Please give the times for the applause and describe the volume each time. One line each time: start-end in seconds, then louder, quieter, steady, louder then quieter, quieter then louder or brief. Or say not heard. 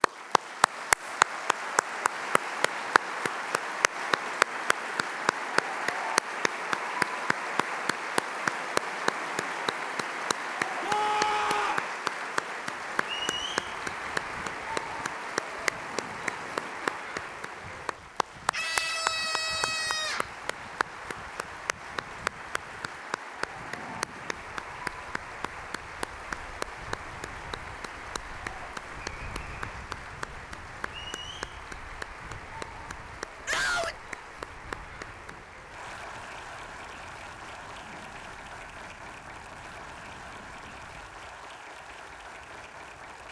0.0-43.2 quieter.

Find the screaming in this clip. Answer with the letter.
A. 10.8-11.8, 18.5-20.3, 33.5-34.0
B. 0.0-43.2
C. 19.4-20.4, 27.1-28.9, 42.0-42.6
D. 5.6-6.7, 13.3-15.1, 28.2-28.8
A.